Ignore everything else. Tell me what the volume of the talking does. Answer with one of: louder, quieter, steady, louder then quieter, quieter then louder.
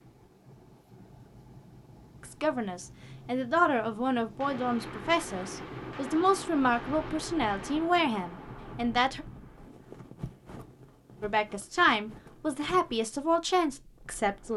steady.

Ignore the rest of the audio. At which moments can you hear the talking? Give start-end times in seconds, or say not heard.
2.2-9.2, 11.2-14.5.